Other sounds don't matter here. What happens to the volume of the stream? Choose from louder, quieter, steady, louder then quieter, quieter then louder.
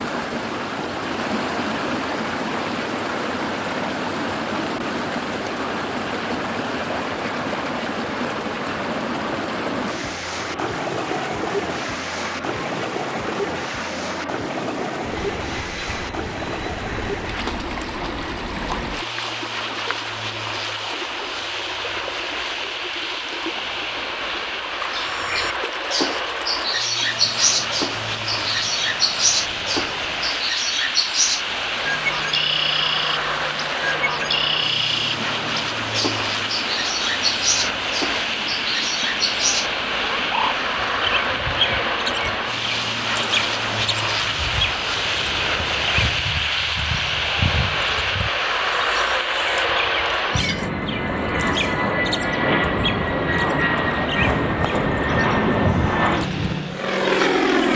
quieter.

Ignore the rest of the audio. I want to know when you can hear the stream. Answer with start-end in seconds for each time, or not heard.
0.0-46.2.